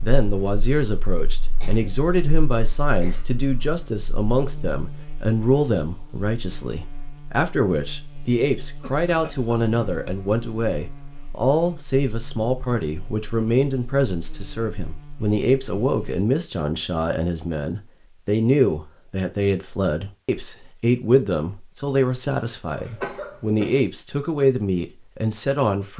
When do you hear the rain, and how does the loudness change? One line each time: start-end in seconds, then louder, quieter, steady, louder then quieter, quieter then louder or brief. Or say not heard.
not heard.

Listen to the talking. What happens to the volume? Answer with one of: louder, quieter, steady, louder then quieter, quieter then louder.
steady.